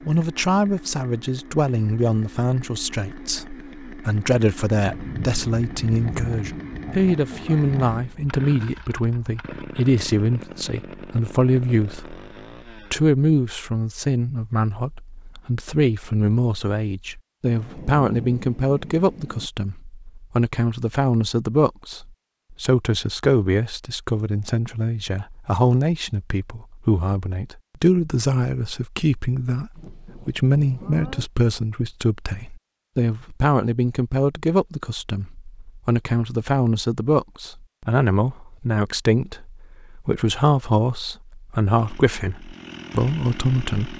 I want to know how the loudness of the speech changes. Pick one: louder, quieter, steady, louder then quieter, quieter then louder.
steady.